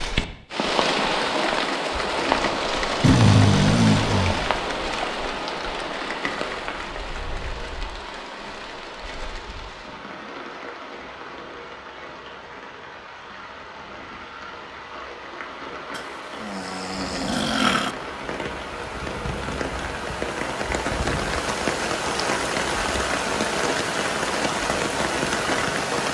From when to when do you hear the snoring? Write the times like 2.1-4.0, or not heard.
3.0-4.4, 15.9-17.9.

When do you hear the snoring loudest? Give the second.
3 s.